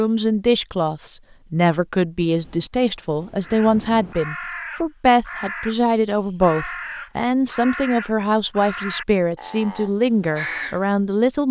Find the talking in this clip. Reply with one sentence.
You can hear the talking from 0.0 to 11.4 s.